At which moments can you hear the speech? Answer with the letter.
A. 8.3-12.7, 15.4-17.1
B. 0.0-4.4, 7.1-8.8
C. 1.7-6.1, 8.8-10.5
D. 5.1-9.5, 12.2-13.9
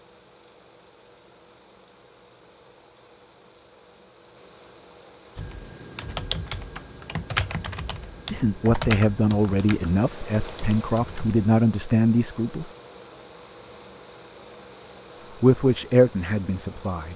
A.